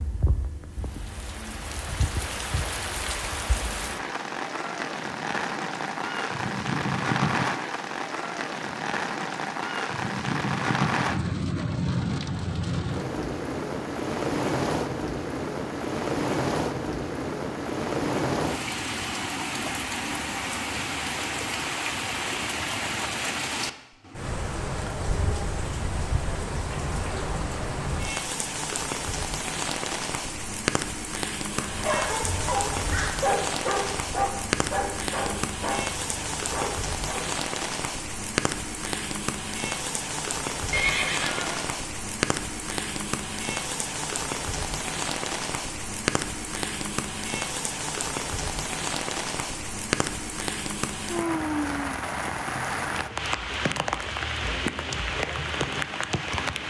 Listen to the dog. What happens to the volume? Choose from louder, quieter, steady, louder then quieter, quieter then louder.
quieter.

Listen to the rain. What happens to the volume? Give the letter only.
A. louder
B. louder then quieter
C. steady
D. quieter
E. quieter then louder
C.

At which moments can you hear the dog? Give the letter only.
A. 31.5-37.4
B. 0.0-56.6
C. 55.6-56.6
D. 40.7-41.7
A.